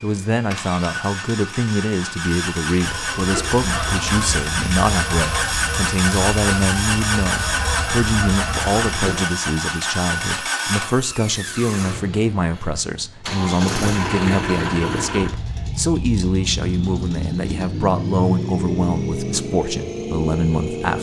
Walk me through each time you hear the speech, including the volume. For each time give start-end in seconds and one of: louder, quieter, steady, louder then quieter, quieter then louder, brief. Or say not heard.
0.0-20.9 steady.